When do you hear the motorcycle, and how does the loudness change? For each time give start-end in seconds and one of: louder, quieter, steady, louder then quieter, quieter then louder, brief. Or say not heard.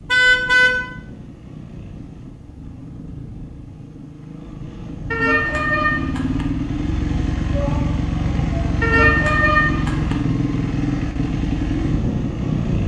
0.0-12.8 louder.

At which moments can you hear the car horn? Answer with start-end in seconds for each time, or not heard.
0.1-0.7, 5.1-6.5, 8.8-10.2.